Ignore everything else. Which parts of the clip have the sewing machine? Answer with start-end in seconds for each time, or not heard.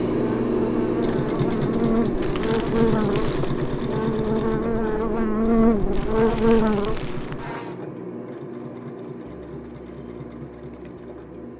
0.0-11.5.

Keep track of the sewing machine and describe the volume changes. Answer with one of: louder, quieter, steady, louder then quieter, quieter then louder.
quieter.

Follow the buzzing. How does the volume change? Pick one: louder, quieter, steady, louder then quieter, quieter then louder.
louder.